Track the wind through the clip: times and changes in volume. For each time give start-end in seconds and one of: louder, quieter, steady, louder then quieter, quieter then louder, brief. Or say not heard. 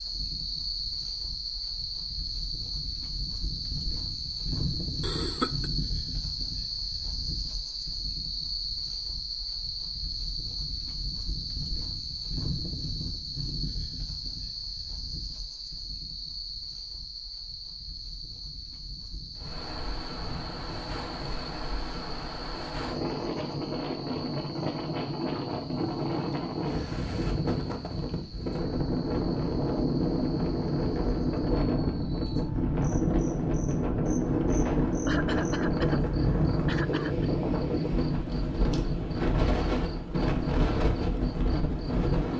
19.4-42.3 louder.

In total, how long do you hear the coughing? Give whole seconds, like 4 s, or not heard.
3 s.